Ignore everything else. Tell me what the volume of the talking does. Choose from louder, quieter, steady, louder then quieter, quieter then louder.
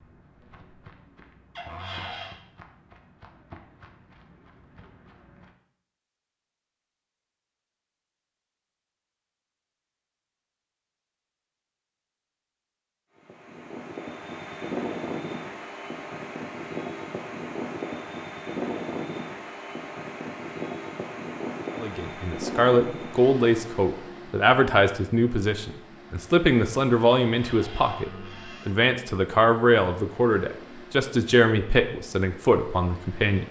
steady.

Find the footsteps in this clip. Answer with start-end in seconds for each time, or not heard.
0.0-5.5.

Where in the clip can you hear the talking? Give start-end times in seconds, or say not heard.
21.8-33.4.